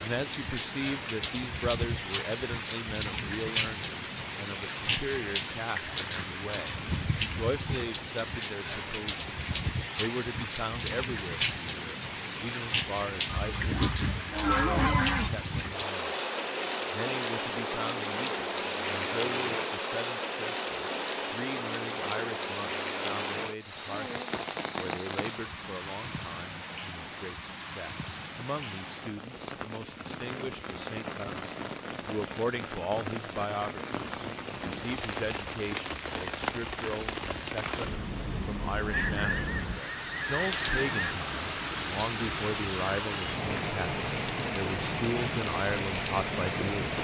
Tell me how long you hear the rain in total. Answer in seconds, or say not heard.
47 s.